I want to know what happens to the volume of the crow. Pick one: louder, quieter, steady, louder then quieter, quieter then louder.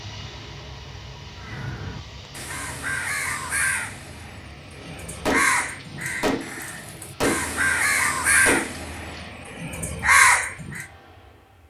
louder.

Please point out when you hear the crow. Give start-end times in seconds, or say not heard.
1.4-10.8.